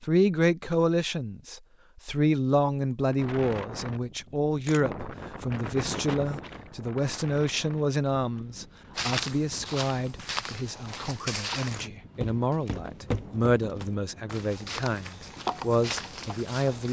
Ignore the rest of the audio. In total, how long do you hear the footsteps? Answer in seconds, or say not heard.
8 s.